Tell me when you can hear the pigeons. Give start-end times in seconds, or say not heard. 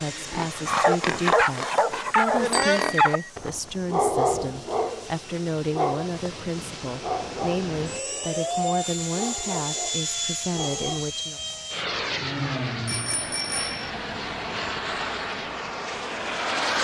not heard.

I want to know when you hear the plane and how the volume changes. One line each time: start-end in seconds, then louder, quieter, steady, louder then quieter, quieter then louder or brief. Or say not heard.
0.0-16.7 louder.